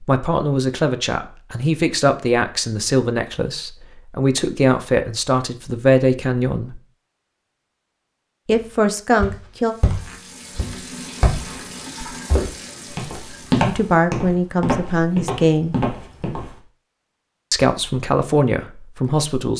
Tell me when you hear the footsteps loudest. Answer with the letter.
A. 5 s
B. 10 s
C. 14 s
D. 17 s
C.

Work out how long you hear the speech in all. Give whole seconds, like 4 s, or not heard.
12 s.